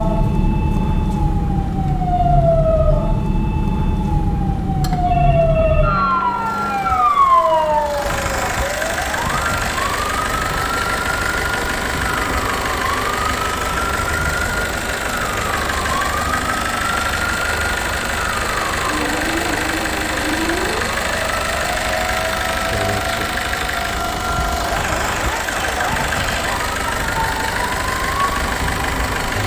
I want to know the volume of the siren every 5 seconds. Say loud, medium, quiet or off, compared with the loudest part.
loud, loud, medium, medium, medium, medium.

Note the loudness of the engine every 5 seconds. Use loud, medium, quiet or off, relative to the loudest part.
quiet, loud, loud, loud, loud, loud.